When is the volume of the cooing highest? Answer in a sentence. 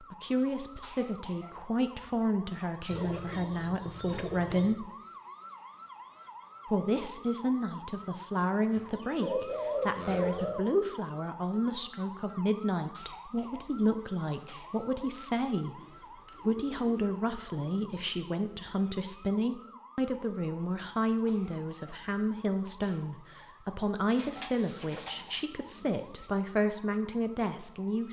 The loudest moment of the cooing is at 10 seconds.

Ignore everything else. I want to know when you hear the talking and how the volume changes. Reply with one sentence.
The talking can be heard from 0.0 to 4.9 s, at a steady volume; from 6.7 to 15.8 s, at a steady volume; and from 16.4 to 28.0 s, at a steady volume.